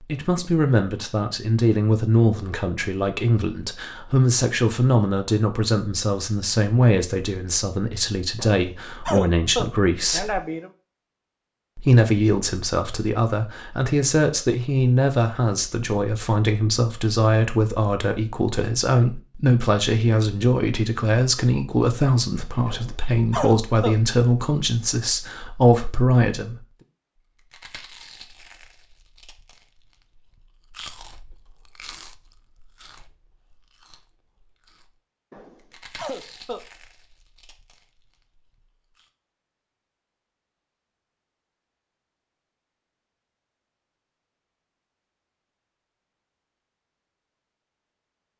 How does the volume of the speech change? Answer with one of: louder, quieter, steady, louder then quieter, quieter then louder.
steady.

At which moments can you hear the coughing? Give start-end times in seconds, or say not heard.
8.3-10.7, 22.6-24.0, 35.3-36.6.